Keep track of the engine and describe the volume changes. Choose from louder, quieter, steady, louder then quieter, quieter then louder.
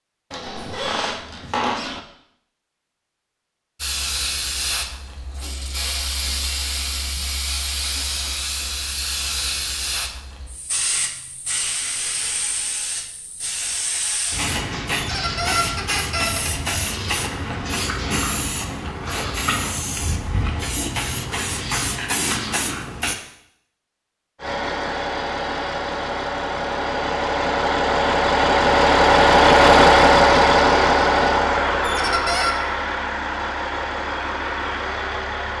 louder then quieter.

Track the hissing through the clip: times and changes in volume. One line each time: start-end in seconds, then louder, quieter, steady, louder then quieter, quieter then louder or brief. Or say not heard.
3.8-23.1 steady.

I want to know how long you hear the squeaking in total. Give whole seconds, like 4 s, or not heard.
4 s.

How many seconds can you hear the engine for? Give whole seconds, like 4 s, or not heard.
11 s.